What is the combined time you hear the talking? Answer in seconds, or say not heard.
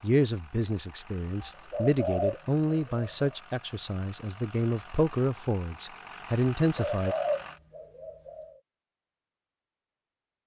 7 s.